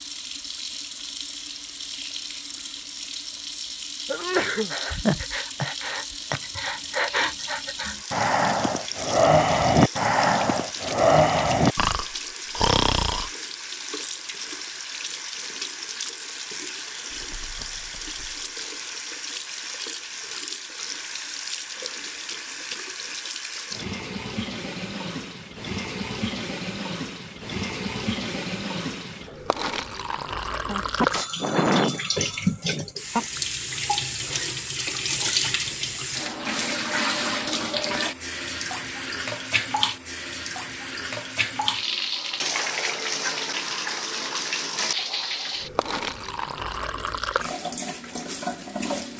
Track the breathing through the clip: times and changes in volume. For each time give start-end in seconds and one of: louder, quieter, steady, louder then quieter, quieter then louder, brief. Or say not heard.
4.7-13.3 louder.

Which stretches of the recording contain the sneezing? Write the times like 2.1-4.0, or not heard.
4.1-4.7, 30.6-32.0, 32.6-33.2.